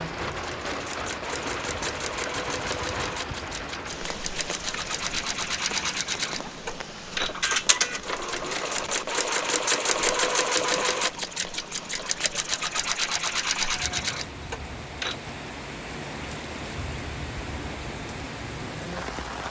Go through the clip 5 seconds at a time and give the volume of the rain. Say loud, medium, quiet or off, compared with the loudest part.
loud, medium, medium, loud.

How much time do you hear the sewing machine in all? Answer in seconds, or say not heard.
15 s.